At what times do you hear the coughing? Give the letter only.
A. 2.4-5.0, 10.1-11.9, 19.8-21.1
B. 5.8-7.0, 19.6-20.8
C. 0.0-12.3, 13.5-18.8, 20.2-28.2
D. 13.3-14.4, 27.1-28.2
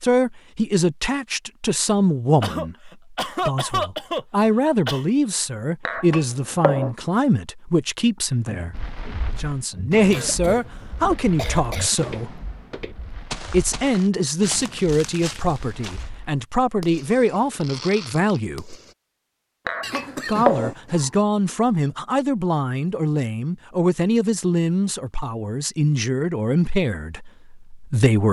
A.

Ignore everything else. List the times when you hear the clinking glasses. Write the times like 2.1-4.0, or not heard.
5.8-7.0, 19.6-20.8.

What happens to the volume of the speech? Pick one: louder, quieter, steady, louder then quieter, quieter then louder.
steady.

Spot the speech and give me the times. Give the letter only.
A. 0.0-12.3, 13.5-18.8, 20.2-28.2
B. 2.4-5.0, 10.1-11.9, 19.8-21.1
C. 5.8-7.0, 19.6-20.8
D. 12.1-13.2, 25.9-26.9
A.